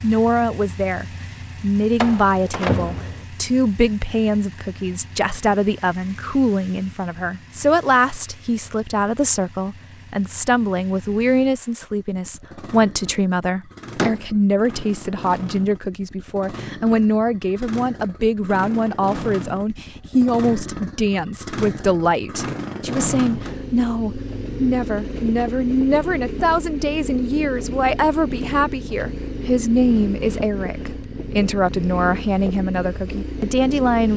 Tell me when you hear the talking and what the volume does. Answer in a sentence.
You can hear the talking from 0.0 to 34.1 s, at a steady volume.